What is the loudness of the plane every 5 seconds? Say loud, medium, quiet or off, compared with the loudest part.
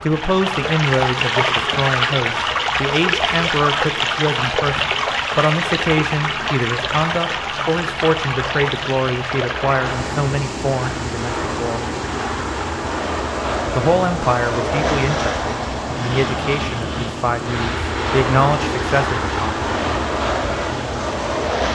quiet, medium, loud, loud, loud.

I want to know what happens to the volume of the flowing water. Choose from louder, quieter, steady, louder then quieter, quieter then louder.
quieter.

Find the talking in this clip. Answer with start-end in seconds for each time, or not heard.
0.0-11.8, 13.8-19.9.